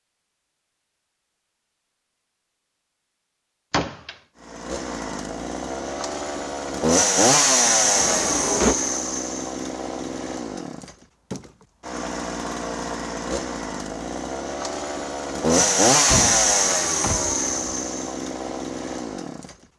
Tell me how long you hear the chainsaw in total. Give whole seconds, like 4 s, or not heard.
15 s.